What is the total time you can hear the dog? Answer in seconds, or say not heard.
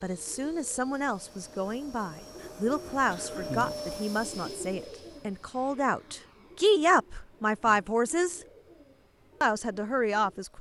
not heard.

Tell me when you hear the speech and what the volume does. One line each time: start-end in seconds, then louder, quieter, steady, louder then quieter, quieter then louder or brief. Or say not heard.
0.0-8.4 louder
9.4-10.5 brief.